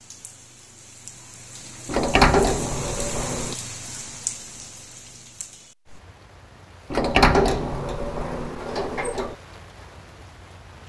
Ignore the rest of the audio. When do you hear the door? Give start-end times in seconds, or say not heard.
1.9-3.5, 6.9-9.3.